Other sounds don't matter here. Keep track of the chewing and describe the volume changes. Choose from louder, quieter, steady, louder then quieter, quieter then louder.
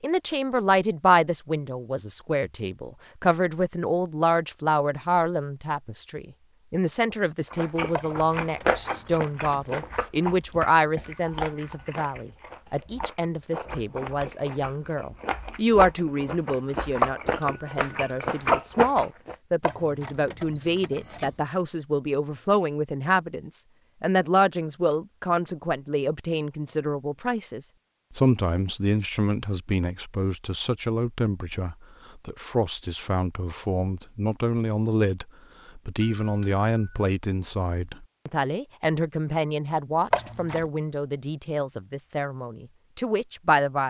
quieter then louder.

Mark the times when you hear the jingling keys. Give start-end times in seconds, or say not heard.
8.0-9.8, 19.6-21.4, 40.1-40.6.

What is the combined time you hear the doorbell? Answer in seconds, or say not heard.
3 s.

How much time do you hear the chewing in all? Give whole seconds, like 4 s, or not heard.
12 s.